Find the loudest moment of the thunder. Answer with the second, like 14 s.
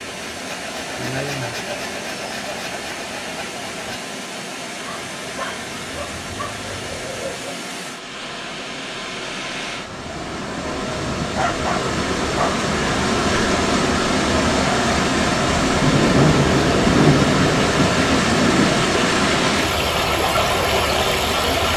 17 s.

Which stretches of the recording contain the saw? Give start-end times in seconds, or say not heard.
0.1-4.0.